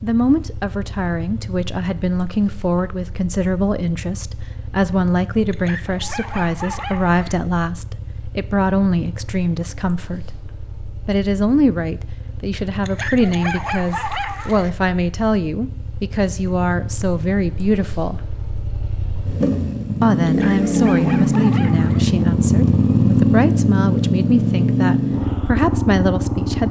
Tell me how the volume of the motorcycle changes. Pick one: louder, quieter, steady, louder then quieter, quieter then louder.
louder.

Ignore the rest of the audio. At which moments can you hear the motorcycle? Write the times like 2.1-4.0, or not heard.
0.0-26.6.